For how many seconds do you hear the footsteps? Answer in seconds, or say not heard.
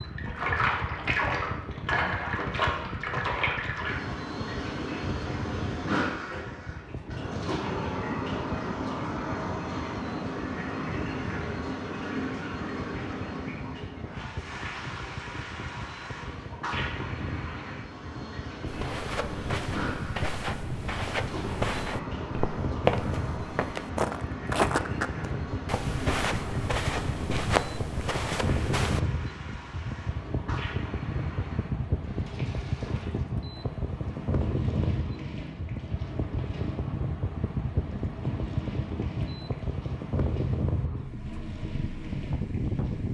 10 s.